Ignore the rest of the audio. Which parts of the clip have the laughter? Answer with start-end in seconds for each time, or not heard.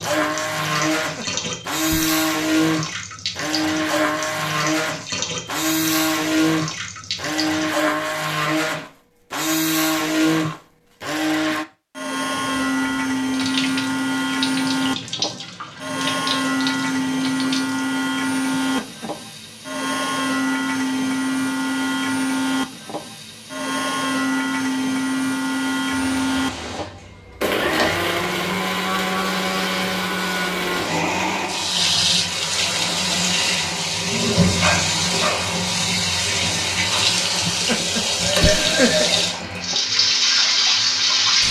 1.1-2.1, 18.6-19.1, 37.5-39.0.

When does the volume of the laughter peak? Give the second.
39 s.